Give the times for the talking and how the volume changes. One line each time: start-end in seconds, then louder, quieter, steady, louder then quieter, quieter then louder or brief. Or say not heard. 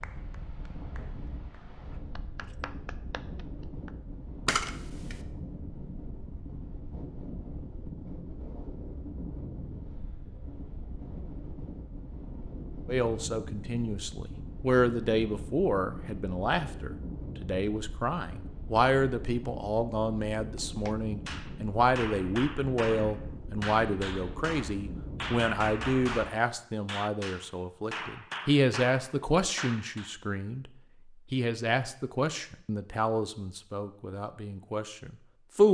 12.8-30.7 steady
31.3-35.6 quieter.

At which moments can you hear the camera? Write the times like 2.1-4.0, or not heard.
4.5-5.2.